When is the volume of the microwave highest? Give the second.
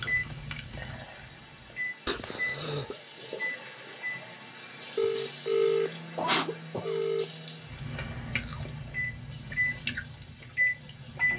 11 s.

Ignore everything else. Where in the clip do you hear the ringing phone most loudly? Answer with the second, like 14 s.
6 s.